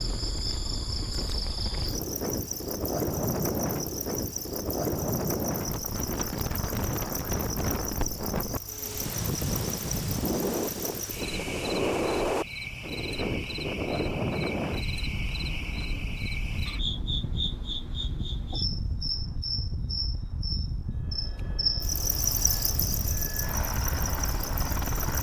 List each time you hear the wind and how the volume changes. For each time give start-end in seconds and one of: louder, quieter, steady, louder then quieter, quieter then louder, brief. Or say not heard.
0.0-25.1 quieter.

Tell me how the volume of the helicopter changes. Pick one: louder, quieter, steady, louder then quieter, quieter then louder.
louder.